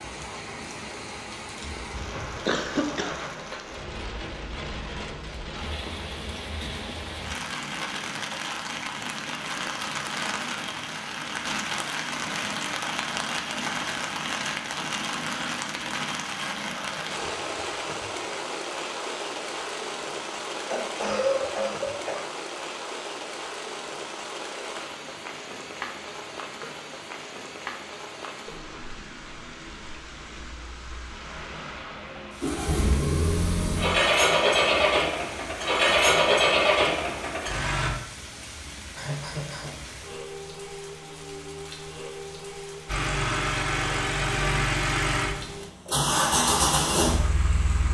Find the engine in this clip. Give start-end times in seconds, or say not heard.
32.4-37.9, 42.9-47.8.